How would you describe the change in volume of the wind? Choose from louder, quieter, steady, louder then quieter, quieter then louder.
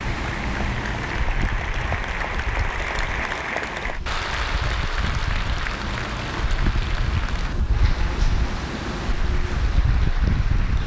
quieter then louder.